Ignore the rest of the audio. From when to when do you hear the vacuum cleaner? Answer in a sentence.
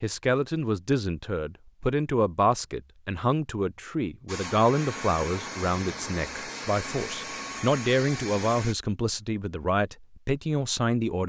You can hear the vacuum cleaner from 4.2 to 8.8 s.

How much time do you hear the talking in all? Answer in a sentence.
You can hear the talking for 11 seconds altogether.